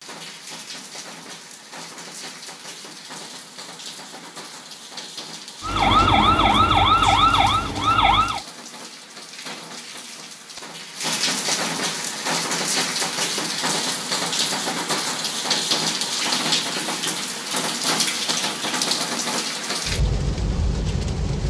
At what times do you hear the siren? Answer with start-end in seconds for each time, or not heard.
5.6-8.4.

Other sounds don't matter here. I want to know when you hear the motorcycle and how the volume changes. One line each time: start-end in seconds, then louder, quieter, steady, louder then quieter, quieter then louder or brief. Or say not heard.
not heard.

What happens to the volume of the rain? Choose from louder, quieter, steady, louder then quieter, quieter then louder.
louder.